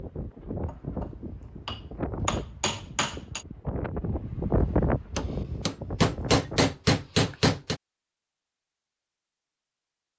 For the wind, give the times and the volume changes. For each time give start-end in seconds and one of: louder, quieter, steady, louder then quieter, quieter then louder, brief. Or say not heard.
0.0-6.8 louder then quieter.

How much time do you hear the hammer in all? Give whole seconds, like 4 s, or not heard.
5 s.